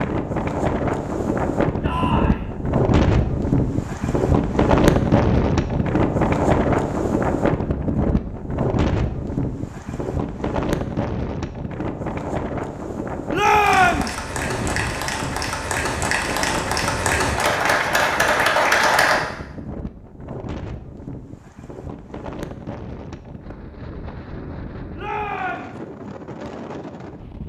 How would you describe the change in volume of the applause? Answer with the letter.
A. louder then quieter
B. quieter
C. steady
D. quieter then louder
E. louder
E.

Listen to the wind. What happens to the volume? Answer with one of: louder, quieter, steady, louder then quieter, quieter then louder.
quieter.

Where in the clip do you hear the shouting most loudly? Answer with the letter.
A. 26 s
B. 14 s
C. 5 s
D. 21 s
B.